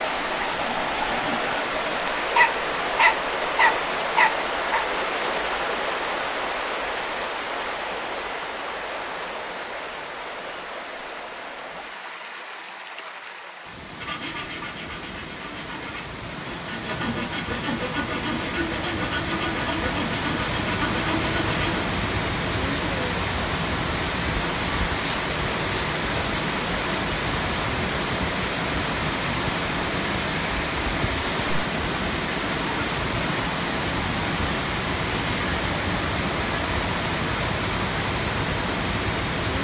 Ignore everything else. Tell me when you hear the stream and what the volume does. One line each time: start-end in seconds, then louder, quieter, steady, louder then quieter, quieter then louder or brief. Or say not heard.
0.0-39.5 quieter then louder.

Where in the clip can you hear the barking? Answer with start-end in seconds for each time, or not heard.
2.4-4.8.